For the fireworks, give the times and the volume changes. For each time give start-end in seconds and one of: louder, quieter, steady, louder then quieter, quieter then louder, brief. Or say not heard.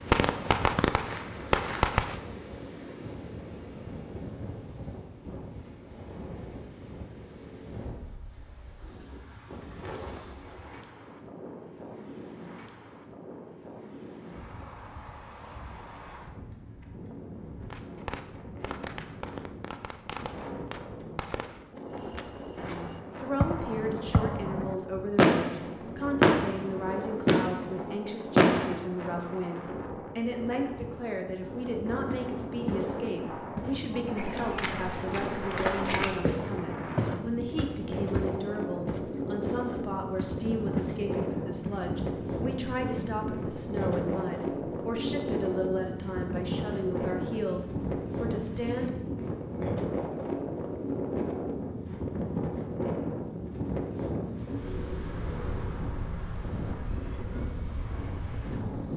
0.0-2.1 brief
17.7-28.9 louder.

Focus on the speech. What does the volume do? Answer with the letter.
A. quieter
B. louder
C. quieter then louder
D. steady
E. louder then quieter
D.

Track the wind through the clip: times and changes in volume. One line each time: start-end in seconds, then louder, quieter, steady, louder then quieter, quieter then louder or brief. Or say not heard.
0.0-58.9 louder.